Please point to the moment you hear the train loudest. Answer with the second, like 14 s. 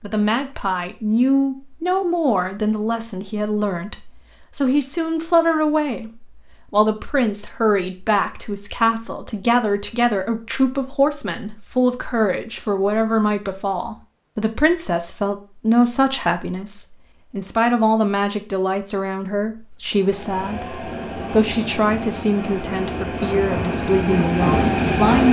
25 s.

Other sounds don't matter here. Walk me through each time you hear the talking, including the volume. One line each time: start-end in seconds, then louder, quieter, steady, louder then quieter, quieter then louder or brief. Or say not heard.
0.0-25.2 steady.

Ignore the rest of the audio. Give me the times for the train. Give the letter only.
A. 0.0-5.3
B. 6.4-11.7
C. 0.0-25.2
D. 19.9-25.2
D.